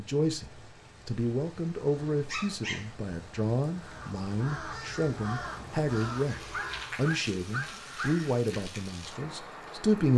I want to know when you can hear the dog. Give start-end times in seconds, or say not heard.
2.3-2.9, 6.5-8.2.